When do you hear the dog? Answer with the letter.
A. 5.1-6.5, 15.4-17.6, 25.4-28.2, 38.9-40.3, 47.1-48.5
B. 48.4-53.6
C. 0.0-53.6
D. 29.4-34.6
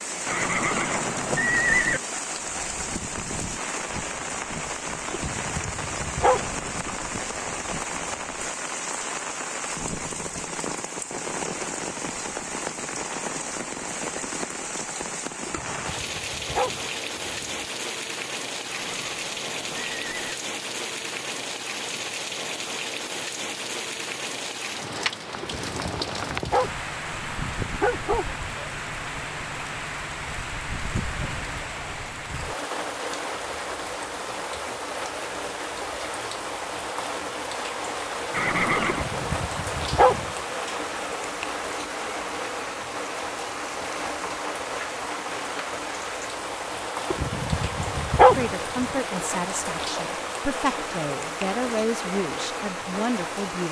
A.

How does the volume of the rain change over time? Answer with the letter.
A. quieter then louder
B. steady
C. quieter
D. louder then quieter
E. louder
B.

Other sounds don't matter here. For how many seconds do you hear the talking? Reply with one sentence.
The talking can be heard for 5 seconds in total.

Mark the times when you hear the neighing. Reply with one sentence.
The neighing can be heard from 0.2 to 2.0 s, from 18.7 to 20.4 s and from 38.3 to 39.0 s.